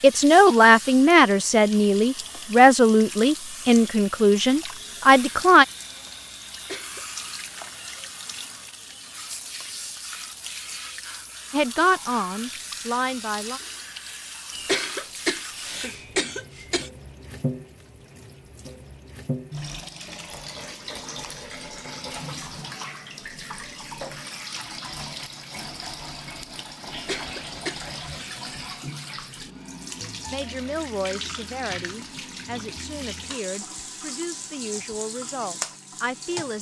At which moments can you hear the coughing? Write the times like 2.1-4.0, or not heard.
6.5-7.3, 14.5-16.9, 26.9-28.4.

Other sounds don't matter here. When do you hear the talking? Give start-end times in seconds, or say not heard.
0.0-5.7, 11.5-13.6, 30.3-36.5.